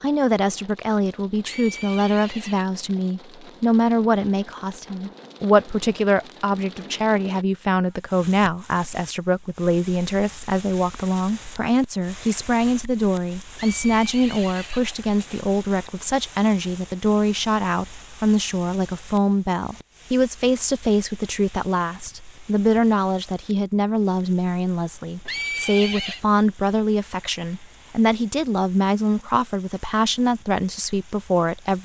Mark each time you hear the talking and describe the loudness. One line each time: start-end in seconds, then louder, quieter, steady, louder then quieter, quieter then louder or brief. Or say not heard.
0.0-31.8 steady.